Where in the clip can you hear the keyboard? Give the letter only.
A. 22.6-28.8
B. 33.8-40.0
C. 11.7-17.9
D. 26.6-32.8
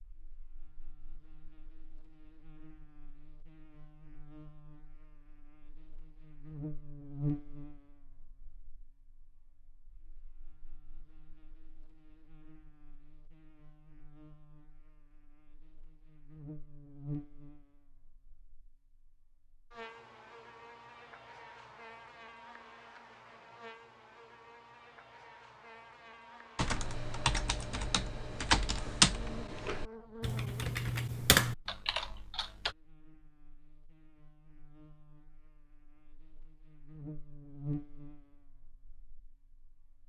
D.